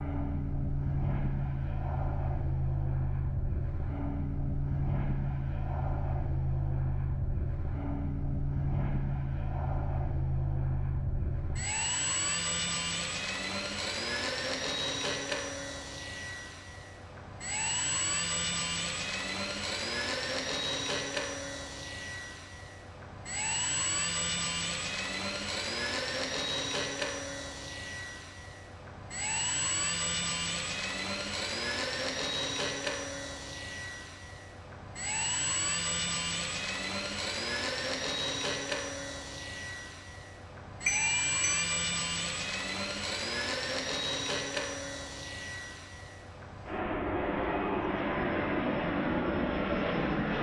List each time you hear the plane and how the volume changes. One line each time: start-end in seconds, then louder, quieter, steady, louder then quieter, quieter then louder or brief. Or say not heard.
0.0-50.3 steady.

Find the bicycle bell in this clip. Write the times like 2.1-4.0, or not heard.
40.9-41.7.